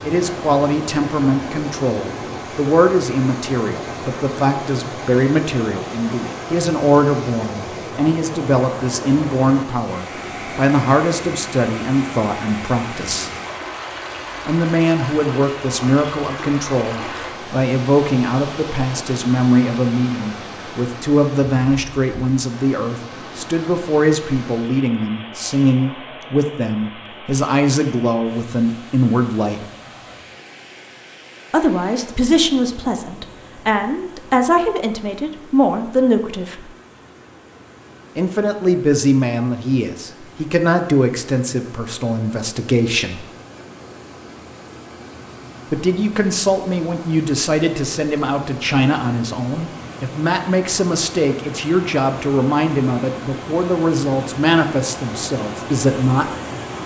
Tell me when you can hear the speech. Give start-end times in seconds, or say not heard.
0.0-13.3, 14.4-29.6, 31.5-36.6, 38.1-43.2, 45.7-56.3.